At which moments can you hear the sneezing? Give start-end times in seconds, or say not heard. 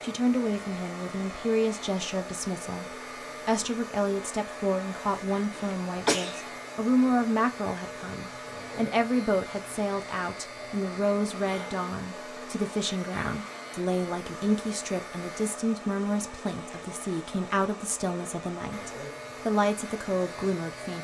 5.3-6.5.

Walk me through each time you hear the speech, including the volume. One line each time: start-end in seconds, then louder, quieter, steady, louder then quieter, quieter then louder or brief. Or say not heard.
0.0-20.9 steady.